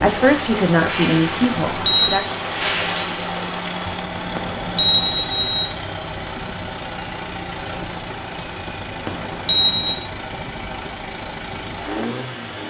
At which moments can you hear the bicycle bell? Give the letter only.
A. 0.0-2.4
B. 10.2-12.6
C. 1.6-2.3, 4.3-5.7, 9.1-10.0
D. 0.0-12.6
C.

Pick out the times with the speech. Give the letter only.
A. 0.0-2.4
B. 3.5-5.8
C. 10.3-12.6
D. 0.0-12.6
A.